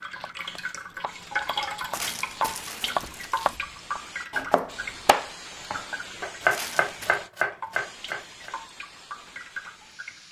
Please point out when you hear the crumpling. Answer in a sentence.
The crumpling can be heard from 1.9 to 3.6 s and from 6.5 to 7.2 s.